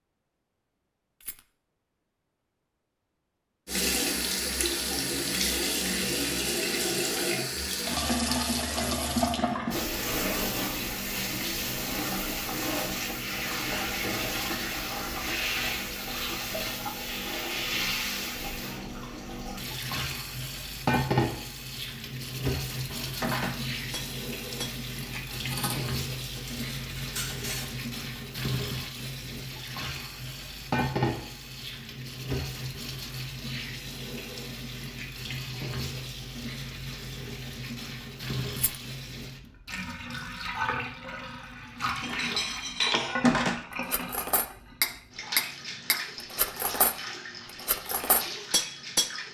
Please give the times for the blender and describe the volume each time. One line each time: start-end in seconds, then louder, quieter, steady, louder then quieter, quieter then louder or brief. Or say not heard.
not heard.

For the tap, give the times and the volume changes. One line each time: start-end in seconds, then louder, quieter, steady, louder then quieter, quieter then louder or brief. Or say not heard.
3.6-49.3 quieter.